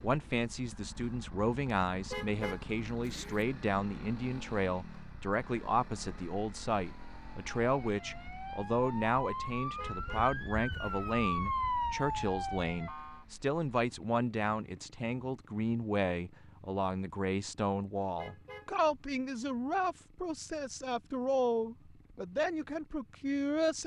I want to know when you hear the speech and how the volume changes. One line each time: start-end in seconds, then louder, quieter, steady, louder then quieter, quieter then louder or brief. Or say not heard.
0.0-23.8 steady.